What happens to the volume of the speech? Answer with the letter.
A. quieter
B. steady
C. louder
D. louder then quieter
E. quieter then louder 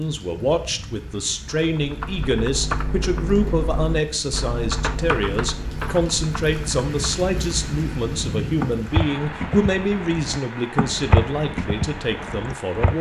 B.